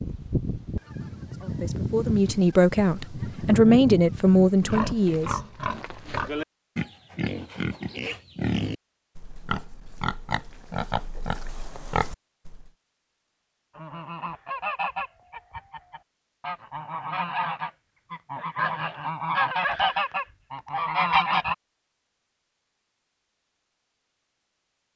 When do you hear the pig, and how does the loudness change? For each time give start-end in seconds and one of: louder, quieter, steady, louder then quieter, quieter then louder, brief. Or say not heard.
4.6-12.7 steady.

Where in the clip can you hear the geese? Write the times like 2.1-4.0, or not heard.
0.0-5.0, 13.8-21.6.